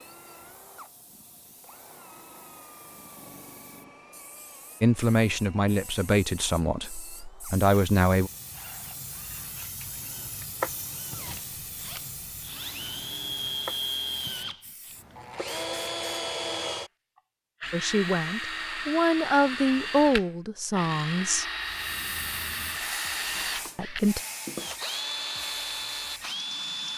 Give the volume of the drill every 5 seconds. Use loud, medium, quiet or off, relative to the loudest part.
quiet, quiet, loud, loud, loud, loud.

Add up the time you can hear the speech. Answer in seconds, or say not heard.
8 s.